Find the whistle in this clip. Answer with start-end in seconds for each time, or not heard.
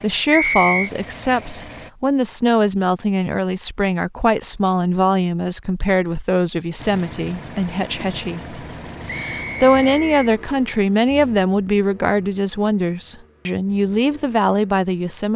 0.3-0.9, 9.1-10.3.